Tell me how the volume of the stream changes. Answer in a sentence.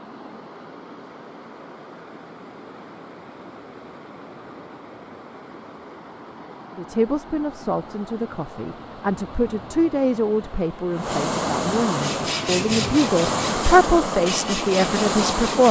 The loudness of the stream goes up.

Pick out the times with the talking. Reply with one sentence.
The talking can be heard from 6.8 to 15.6 s.